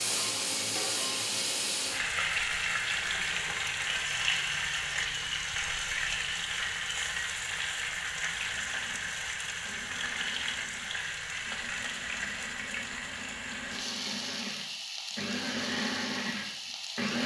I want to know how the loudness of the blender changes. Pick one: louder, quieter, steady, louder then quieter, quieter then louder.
louder.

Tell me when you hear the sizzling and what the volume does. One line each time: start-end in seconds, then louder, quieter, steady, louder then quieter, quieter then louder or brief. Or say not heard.
0.0-17.2 quieter.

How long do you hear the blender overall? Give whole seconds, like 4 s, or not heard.
9 s.